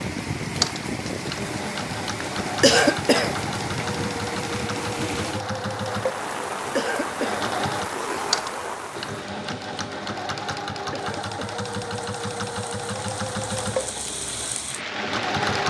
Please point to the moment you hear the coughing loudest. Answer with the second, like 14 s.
3 s.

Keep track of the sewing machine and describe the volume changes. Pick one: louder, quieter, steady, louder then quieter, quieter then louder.
steady.